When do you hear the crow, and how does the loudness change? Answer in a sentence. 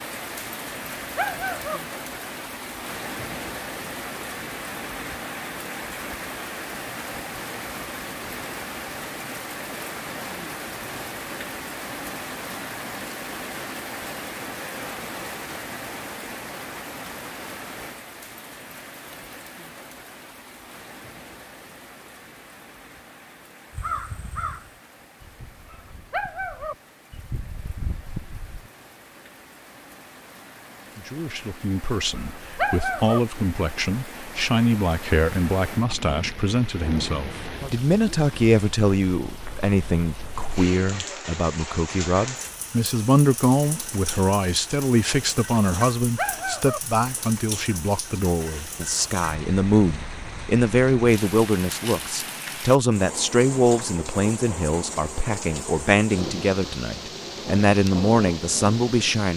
The crow can be heard from 23.7 to 28.7 s, getting quieter then louder.